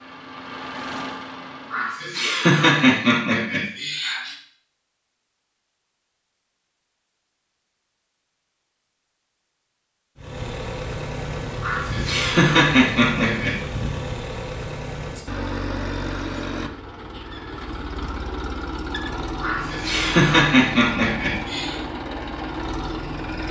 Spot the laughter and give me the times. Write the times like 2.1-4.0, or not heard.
1.7-4.3, 11.6-13.6, 19.4-21.8.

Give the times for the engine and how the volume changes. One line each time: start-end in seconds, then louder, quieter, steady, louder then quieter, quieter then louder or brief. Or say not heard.
0.0-2.0 brief
10.2-23.4 steady.